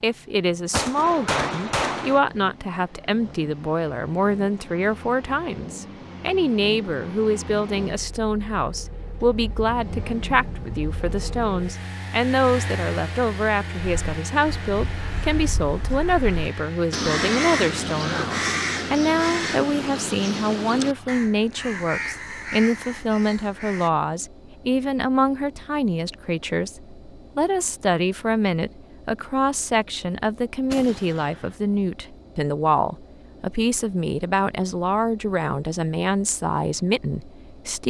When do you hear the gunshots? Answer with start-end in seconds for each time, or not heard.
0.7-2.2, 30.7-31.6.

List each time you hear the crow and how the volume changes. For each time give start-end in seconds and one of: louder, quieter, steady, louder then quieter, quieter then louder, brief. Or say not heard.
13.8-23.9 louder then quieter.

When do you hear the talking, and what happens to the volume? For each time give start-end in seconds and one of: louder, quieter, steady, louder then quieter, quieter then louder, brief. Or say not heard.
0.0-37.8 steady.